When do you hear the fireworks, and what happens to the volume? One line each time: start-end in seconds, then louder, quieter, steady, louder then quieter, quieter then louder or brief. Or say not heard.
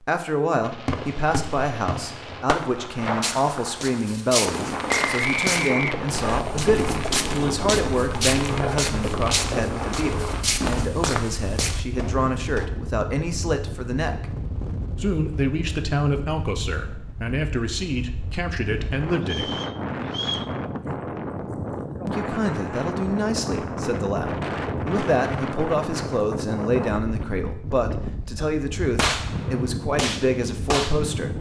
0.6-10.8 steady
28.4-31.2 brief.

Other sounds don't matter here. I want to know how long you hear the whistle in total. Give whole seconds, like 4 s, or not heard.
3 s.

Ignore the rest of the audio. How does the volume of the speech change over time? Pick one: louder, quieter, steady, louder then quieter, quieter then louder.
steady.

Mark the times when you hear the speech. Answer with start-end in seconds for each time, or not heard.
0.0-14.3, 15.0-19.6, 22.1-31.3.